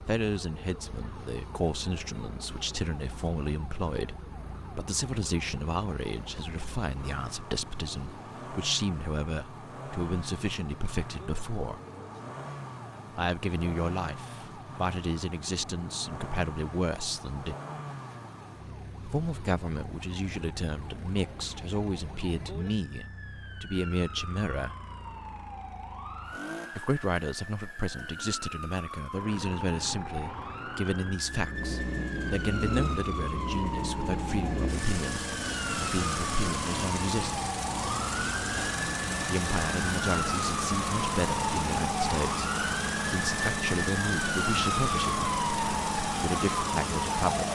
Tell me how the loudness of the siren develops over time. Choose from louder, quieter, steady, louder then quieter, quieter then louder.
louder.